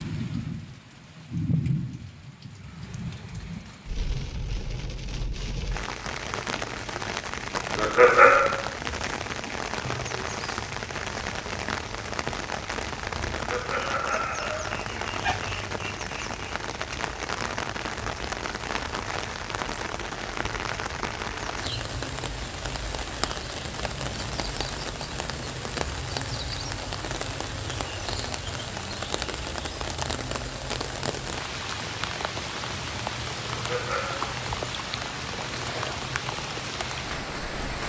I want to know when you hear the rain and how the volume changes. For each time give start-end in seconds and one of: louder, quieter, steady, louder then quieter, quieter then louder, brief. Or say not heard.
0.0-37.8 steady.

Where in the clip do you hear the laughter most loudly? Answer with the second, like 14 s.
8 s.